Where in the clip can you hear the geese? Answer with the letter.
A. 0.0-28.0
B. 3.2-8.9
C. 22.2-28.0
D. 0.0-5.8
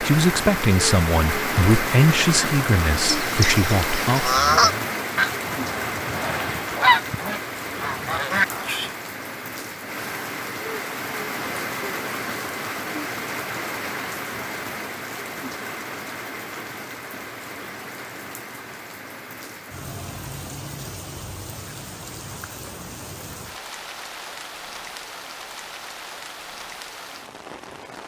B.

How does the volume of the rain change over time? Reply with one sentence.
The loudness of the rain goes down.